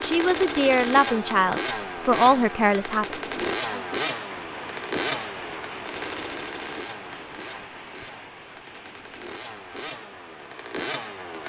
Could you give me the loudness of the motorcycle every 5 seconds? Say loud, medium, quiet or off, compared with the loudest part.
loud, medium, medium.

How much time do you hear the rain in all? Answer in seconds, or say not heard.
10 s.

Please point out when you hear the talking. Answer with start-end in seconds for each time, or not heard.
0.0-3.8.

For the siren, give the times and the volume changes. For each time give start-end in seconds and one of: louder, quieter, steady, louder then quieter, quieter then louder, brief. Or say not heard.
not heard.